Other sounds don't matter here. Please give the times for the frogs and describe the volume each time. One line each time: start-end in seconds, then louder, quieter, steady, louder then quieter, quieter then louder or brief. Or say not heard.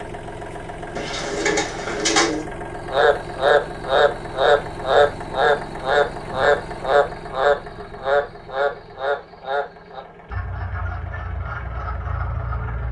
2.9-12.8 quieter.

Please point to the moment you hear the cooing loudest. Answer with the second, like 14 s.
2 s.